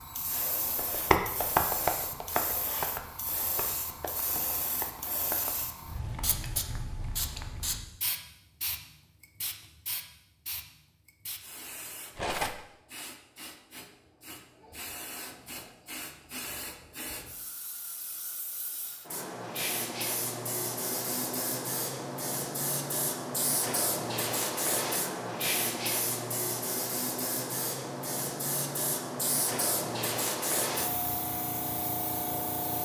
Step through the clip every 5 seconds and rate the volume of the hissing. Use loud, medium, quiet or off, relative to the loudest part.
medium, medium, quiet, medium, loud, loud, loud.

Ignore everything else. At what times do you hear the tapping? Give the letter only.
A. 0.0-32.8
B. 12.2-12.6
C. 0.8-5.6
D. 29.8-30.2
C.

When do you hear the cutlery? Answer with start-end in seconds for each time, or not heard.
12.2-12.6.